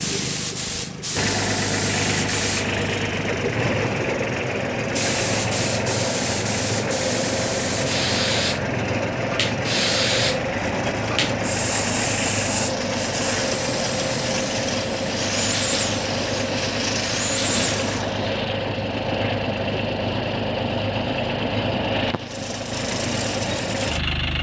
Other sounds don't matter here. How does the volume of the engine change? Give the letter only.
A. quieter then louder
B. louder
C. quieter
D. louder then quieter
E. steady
E.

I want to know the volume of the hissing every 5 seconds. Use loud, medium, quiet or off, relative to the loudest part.
loud, loud, loud, loud, off.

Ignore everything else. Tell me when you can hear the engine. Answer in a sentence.
The engine can be heard from 0.0 to 24.3 s.